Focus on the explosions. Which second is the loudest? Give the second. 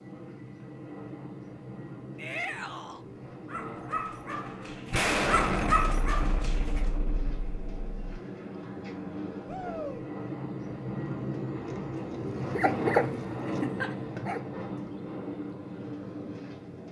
5 s.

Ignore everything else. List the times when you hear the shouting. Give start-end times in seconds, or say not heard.
2.1-3.0, 9.4-10.1.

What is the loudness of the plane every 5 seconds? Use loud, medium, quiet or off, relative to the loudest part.
medium, medium, loud, medium.